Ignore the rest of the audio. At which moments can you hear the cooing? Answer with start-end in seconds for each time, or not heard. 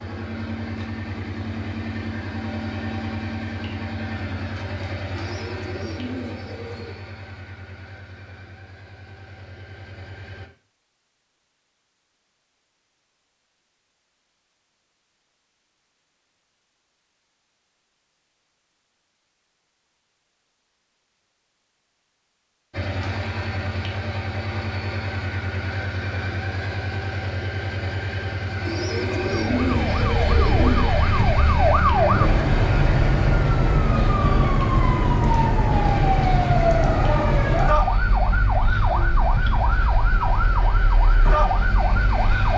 5.1-7.0, 28.6-30.9.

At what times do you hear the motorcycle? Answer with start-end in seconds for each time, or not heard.
0.0-10.5, 22.7-42.5.